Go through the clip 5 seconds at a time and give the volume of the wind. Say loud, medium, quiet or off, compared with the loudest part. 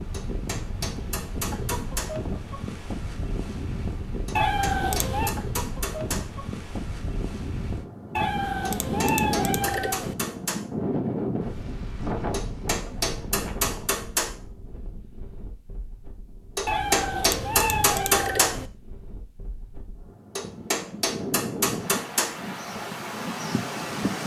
loud, loud, loud, quiet, loud.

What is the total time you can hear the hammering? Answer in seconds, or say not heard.
12 s.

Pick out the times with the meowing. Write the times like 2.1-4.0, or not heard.
4.3-5.3, 8.2-10.2, 16.6-18.7.